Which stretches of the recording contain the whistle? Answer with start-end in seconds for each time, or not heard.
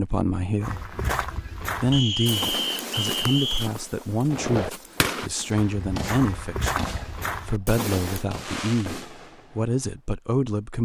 1.9-3.7.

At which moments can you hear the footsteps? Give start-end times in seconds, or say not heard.
0.6-8.2.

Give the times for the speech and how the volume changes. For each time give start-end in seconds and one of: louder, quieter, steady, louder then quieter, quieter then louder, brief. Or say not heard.
0.0-0.9 brief
1.8-10.7 steady.